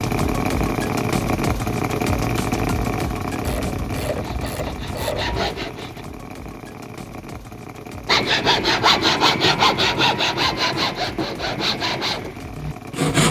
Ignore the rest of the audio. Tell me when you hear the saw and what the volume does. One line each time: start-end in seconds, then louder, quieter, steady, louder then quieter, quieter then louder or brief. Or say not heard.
4.0-6.0 brief
8.1-13.2 quieter.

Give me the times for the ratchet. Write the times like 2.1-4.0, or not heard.
3.4-5.4.